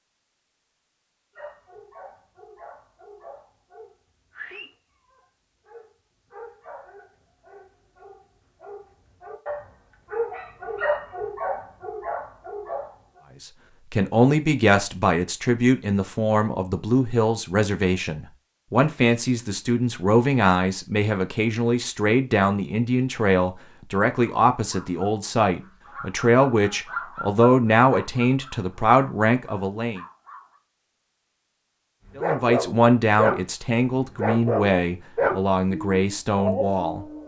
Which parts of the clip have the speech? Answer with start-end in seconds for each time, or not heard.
13.4-30.0, 32.1-37.0.